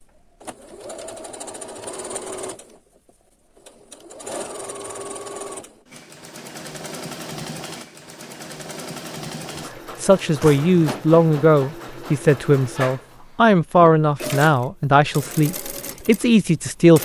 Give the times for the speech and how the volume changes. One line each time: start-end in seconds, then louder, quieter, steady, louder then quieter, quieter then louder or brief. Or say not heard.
9.6-17.0 steady.